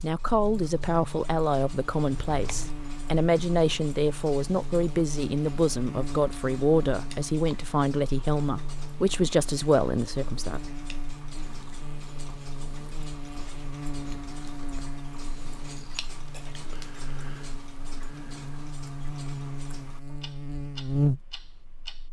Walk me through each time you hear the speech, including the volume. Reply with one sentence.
You can hear the speech from 0.0 to 10.6 s, at a steady volume.